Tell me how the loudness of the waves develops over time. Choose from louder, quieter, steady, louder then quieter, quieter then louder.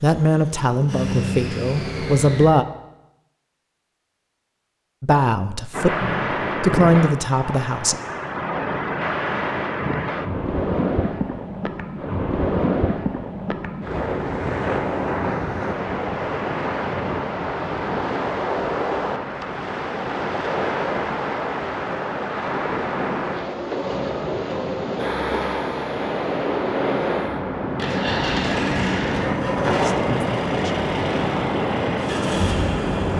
steady.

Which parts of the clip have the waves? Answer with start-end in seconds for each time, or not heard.
5.7-33.1.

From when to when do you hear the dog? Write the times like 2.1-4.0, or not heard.
not heard.